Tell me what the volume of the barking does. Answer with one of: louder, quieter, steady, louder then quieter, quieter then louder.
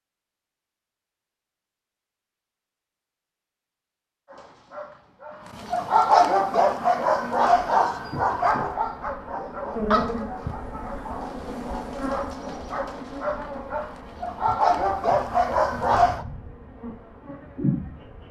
quieter then louder.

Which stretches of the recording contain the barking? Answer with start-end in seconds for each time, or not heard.
4.2-16.2.